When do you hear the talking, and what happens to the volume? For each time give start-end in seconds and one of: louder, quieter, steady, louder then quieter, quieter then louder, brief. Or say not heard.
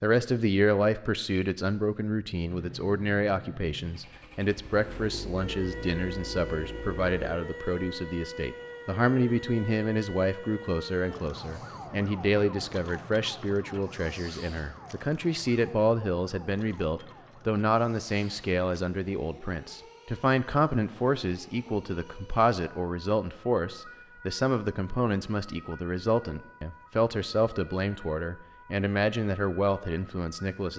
0.0-30.7 steady.